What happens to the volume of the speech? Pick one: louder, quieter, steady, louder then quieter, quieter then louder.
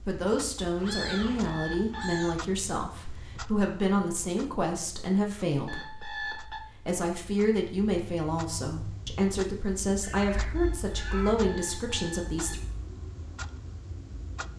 steady.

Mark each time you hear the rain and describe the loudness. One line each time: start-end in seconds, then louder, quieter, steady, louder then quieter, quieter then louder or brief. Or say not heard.
not heard.